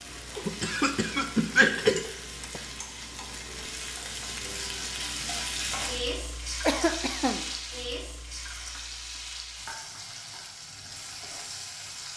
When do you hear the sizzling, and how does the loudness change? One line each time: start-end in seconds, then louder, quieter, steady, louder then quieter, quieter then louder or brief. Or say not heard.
0.0-12.1 louder then quieter.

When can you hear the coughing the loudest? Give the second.
2 s.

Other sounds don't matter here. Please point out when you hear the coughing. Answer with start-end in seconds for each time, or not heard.
0.3-2.6, 6.6-7.5.